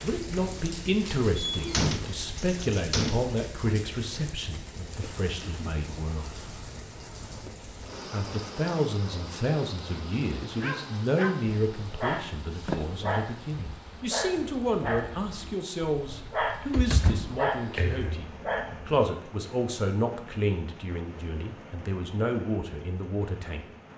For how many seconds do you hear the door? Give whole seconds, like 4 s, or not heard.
4 s.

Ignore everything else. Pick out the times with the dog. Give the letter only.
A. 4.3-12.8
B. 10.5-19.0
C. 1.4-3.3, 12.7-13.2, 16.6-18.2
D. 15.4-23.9
B.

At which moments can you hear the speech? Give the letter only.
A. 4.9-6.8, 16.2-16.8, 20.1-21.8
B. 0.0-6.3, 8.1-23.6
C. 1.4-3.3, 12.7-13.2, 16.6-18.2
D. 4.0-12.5
B.